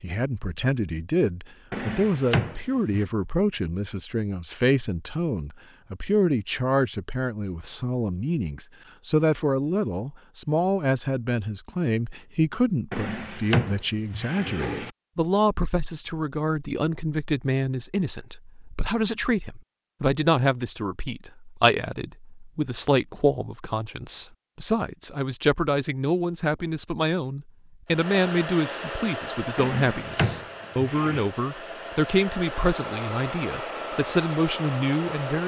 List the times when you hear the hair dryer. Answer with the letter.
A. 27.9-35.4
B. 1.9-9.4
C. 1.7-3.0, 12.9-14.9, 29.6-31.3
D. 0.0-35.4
A.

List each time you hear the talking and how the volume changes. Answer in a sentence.
You can hear the talking from 0.0 to 35.4 s, at a steady volume.